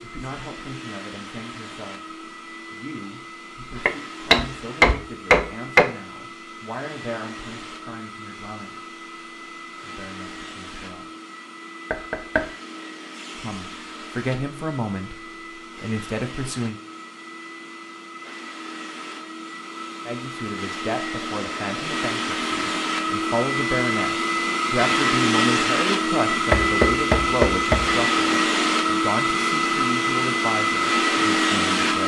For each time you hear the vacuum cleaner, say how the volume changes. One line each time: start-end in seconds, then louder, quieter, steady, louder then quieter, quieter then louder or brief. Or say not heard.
0.0-32.0 louder.